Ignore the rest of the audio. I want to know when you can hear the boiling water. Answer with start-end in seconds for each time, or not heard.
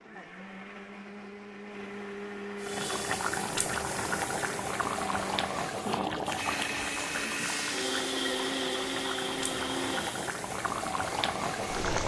2.6-12.0.